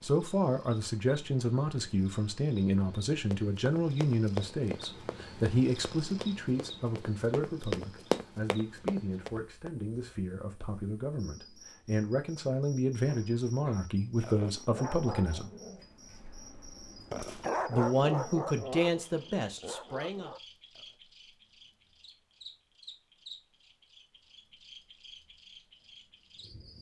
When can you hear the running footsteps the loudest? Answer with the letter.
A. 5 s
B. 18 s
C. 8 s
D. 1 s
C.